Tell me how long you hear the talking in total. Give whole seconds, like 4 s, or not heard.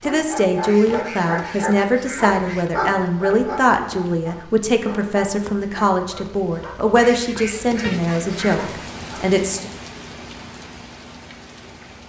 10 s.